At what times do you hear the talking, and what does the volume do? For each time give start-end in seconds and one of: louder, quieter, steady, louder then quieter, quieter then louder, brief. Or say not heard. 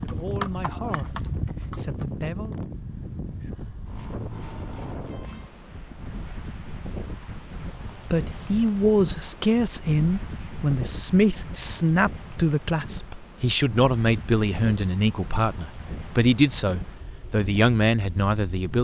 0.0-2.6 brief
8.1-18.7 steady.